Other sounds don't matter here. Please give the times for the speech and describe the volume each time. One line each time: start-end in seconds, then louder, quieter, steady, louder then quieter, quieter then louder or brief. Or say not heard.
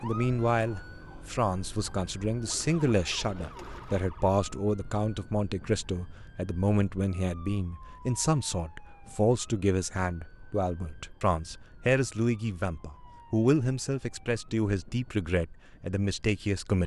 0.0-16.8 steady.